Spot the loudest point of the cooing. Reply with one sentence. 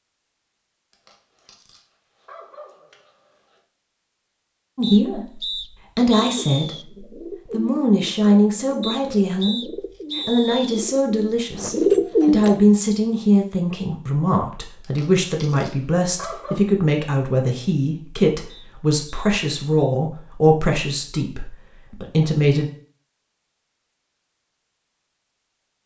The loudest moment of the cooing is at 12 seconds.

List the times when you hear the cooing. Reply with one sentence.
The cooing can be heard from 6.2 to 12.7 s.